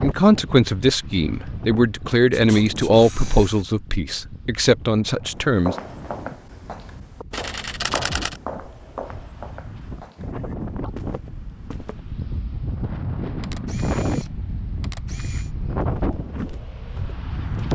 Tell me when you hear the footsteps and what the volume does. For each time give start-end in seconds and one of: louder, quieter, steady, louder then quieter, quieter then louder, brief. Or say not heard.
5.2-12.2 quieter
15.9-17.6 brief.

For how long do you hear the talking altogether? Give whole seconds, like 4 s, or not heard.
6 s.